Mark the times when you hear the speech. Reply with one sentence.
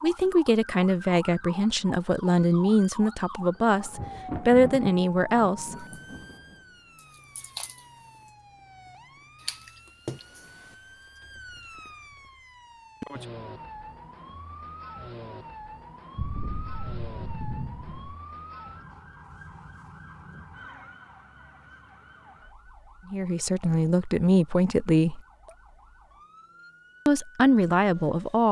You can hear the speech from 0.0 to 5.8 s, from 23.1 to 25.2 s and from 27.1 to 28.4 s.